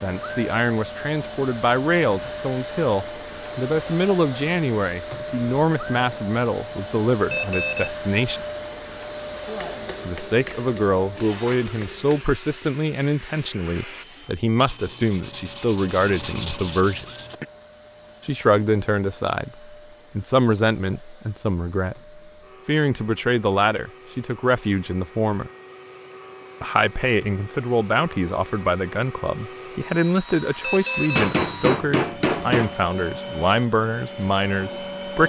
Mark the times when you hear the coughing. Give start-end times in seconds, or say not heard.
not heard.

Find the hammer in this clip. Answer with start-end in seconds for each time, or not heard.
9.4-12.2, 31.1-32.9.